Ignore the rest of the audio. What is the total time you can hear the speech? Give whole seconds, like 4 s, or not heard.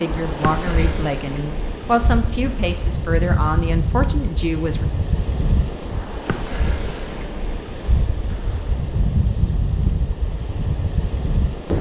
5 s.